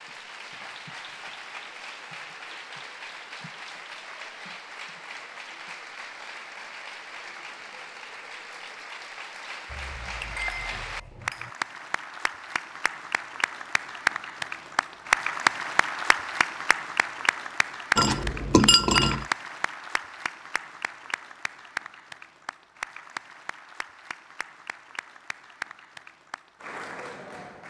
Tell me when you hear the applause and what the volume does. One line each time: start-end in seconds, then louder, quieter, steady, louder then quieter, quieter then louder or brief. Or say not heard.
0.0-27.6 louder then quieter.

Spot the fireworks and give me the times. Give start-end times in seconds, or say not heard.
not heard.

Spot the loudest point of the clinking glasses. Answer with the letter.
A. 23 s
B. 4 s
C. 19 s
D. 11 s
C.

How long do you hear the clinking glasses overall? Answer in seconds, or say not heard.
3 s.